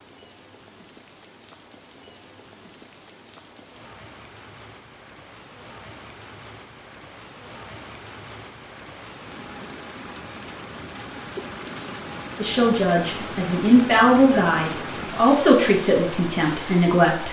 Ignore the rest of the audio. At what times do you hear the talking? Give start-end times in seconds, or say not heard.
12.3-17.2.